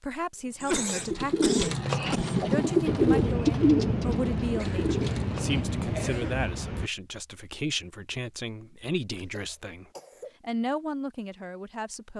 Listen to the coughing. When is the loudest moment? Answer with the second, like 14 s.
1 s.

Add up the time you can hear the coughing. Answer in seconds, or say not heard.
4 s.